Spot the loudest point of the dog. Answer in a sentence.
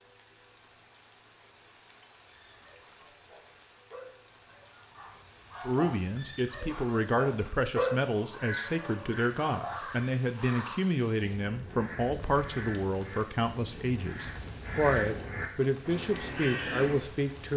The volume of the dog peaks at 8 seconds.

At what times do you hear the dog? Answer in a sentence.
The dog can be heard from 2.2 to 10.1 s.